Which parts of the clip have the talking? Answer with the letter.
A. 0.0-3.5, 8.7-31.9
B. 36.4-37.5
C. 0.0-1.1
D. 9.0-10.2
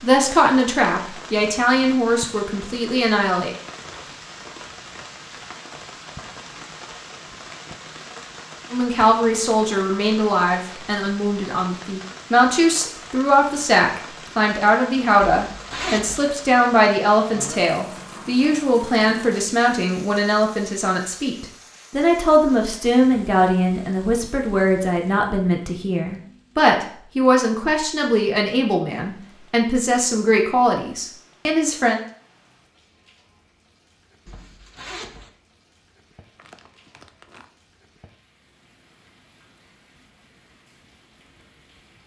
A.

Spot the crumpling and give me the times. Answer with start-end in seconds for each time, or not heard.
36.4-37.5.